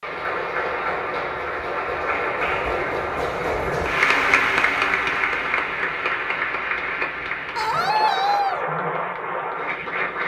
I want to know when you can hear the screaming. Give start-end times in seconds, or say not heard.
7.5-8.7.